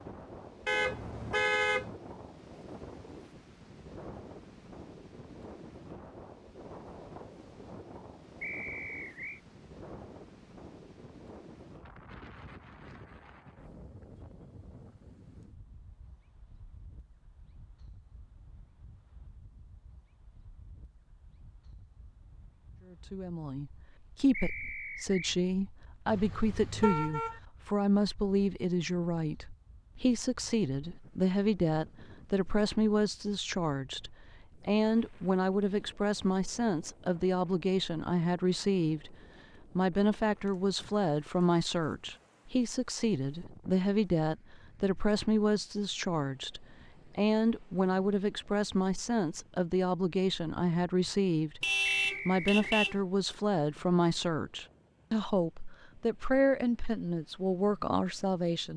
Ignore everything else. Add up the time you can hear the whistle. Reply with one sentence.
You can hear the whistle for 3 seconds altogether.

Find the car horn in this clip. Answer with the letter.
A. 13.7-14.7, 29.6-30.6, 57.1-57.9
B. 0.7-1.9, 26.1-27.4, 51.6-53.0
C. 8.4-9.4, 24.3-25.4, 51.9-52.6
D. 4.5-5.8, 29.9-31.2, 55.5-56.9
B.